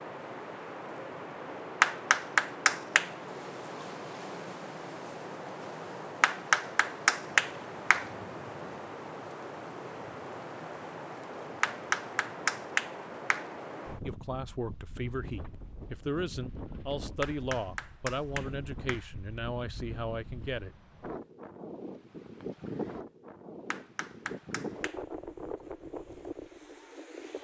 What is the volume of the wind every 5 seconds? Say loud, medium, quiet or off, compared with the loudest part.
loud, loud, loud, medium, loud, loud.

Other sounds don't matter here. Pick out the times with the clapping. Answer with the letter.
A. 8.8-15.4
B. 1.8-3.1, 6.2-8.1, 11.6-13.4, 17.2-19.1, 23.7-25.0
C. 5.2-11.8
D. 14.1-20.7
B.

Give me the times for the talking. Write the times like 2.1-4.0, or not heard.
14.1-20.7.